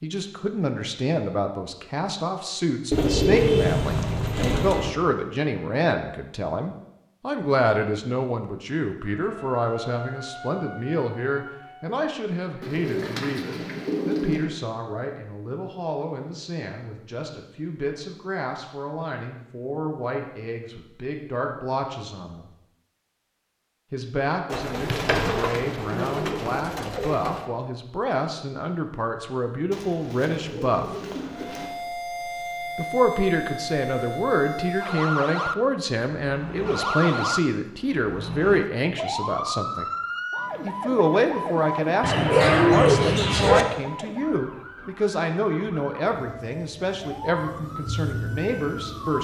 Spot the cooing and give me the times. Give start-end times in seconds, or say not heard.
2.9-4.9, 12.6-14.4, 24.5-27.4, 29.7-31.7, 42.0-43.6.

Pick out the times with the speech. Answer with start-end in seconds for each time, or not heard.
0.0-22.5, 23.9-30.9, 32.8-39.9, 40.6-49.1.